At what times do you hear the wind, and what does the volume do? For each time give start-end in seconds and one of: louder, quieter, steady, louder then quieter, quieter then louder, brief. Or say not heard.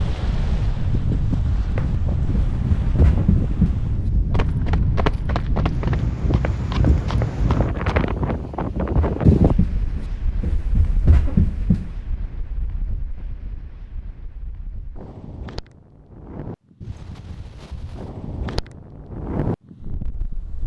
0.0-20.6 quieter then louder.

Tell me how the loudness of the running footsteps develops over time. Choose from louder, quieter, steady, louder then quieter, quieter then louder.
quieter then louder.